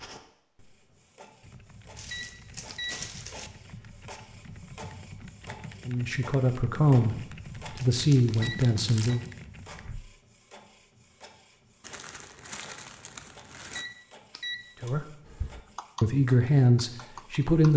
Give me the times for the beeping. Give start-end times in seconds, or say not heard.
2.1-3.0, 8.4-9.2, 13.8-14.7.